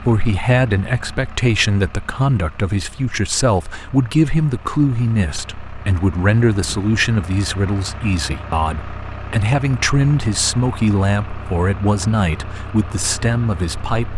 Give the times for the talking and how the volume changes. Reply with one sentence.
You can hear the talking from 0.0 to 14.1 s, at a steady volume.